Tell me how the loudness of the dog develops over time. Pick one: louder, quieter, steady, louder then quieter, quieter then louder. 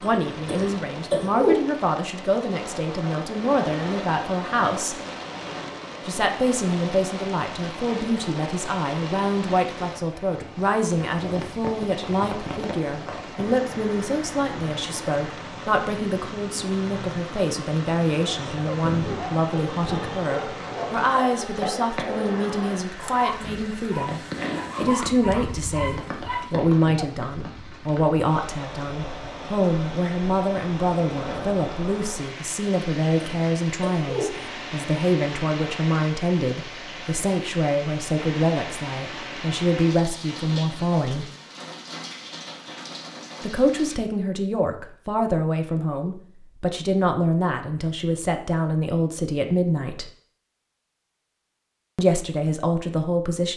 steady.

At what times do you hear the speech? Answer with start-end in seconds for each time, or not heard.
0.0-5.0, 6.0-24.2, 24.8-41.2, 43.4-50.0, 52.0-53.5.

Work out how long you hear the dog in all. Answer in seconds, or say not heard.
9 s.